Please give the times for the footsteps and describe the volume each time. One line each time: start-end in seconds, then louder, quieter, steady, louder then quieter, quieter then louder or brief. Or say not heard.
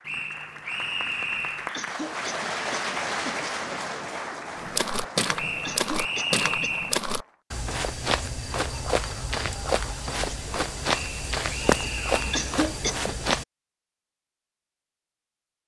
4.5-13.4 steady.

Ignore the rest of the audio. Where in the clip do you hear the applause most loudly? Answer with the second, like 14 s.
3 s.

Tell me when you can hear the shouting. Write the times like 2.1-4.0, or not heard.
not heard.